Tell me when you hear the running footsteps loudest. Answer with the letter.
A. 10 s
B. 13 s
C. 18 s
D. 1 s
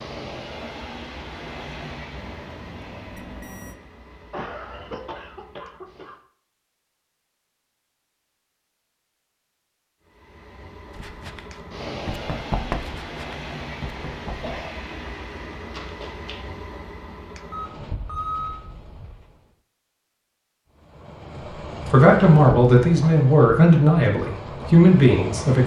B.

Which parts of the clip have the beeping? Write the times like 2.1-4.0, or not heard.
2.1-3.8, 17.5-18.6.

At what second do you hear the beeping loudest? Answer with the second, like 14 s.
18 s.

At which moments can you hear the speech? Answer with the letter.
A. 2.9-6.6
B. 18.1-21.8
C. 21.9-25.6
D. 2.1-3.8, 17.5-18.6
C.